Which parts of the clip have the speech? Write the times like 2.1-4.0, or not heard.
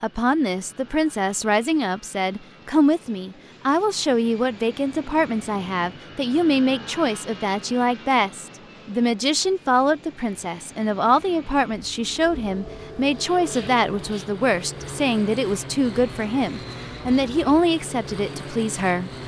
0.0-19.1.